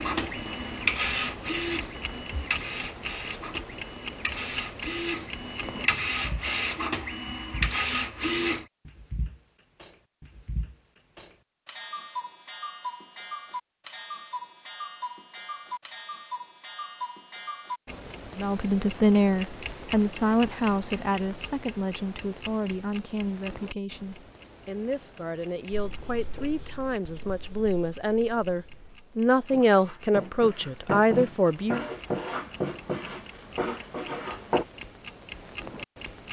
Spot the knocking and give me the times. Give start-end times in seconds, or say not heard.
not heard.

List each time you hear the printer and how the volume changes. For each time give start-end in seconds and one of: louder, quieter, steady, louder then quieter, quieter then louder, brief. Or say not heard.
0.0-8.7 quieter then louder.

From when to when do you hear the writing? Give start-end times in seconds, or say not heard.
25.7-34.6.